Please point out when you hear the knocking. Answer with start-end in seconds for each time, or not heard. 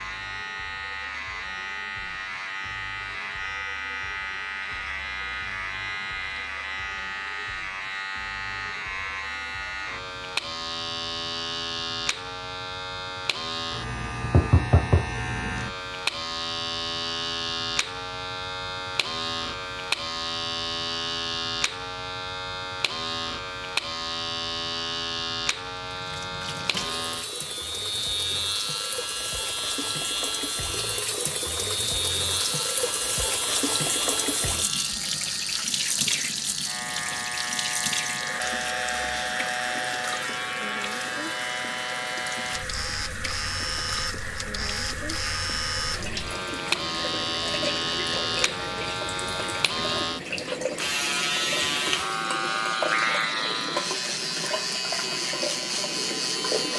14.2-15.7.